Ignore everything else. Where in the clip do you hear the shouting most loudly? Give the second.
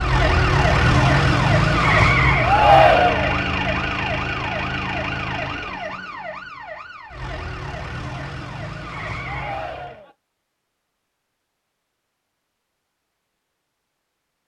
3 s.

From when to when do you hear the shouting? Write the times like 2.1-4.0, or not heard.
2.4-3.4, 9.2-10.2.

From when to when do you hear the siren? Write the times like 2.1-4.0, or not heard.
0.0-10.0.